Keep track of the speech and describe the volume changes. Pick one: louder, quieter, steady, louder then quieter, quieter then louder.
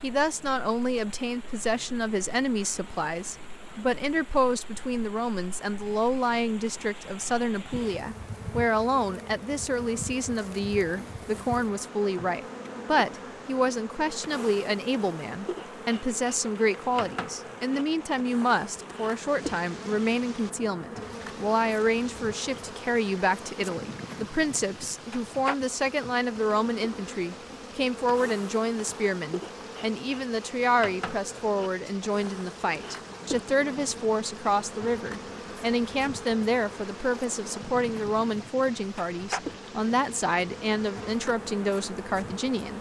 steady.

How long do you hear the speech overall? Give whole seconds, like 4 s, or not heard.
43 s.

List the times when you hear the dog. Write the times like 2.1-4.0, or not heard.
not heard.